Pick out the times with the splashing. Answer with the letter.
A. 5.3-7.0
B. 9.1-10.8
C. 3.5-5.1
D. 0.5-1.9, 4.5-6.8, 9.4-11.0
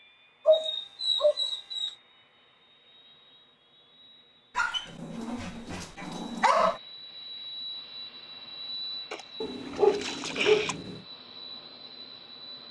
B.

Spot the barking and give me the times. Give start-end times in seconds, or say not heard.
0.5-1.9, 4.5-6.8, 9.4-11.0.